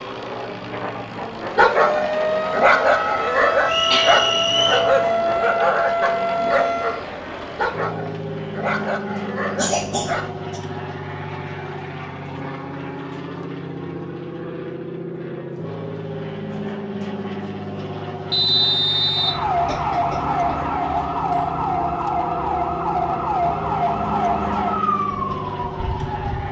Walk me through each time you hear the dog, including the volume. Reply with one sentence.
You can hear the dog from 1.6 to 10.3 s, getting quieter.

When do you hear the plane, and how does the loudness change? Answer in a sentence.
You can hear the plane from 0.0 to 26.4 s, at a steady volume.